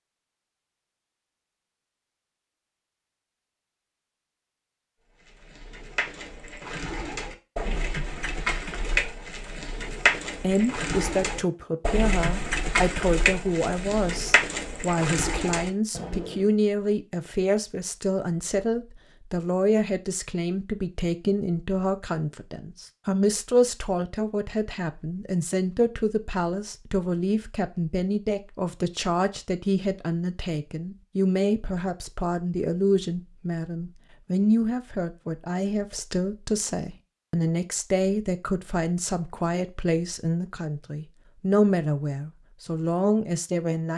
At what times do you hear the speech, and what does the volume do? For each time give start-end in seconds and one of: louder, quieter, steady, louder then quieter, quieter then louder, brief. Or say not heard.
10.4-43.9 steady.